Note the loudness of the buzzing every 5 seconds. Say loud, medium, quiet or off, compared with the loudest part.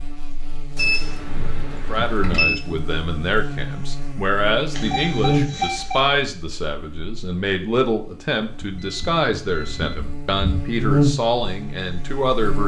medium, medium, loud.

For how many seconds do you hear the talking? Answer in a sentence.
The talking can be heard for 11 seconds in total.